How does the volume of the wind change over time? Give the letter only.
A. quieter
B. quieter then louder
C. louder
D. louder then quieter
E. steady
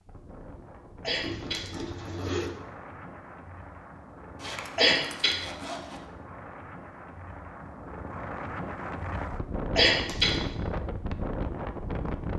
C.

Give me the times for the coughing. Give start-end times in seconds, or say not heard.
1.0-1.6, 4.8-5.4, 9.8-10.4.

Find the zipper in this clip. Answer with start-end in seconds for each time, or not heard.
1.2-2.5, 4.3-6.0, 9.8-10.6.